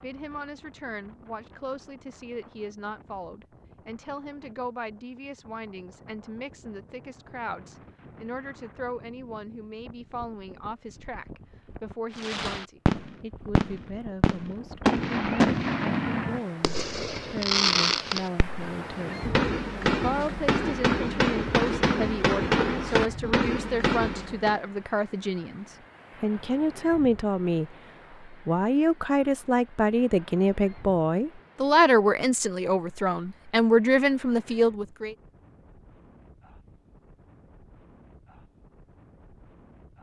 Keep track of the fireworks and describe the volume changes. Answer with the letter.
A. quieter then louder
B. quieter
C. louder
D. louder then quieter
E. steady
E.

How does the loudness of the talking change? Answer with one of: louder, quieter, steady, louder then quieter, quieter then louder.
louder.